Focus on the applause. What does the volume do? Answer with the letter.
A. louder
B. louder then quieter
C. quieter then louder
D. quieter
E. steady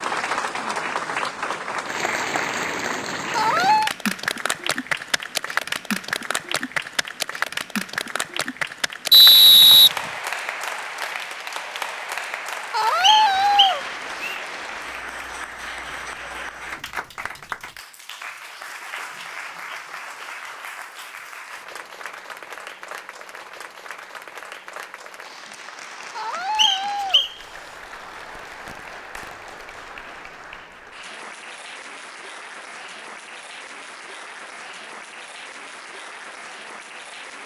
D.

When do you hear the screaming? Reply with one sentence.
You can hear the screaming from 3.3 to 3.9 s, from 12.7 to 13.8 s and from 26.1 to 27.2 s.